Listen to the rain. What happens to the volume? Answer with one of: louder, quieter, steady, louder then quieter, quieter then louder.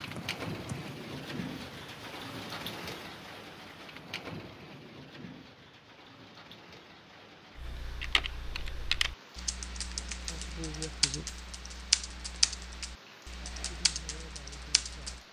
quieter.